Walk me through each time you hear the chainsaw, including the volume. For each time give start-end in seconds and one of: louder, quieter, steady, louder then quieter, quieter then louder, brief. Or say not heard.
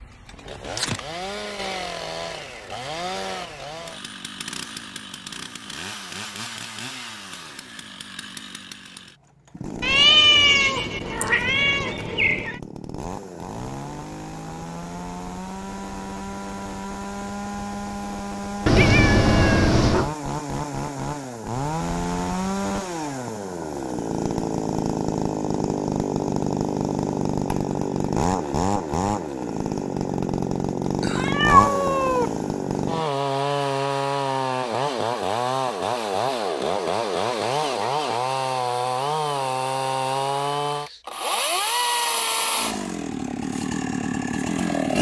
0.0-44.9 louder.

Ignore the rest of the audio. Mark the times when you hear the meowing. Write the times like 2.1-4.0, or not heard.
9.8-12.6, 18.6-20.1, 31.0-32.3.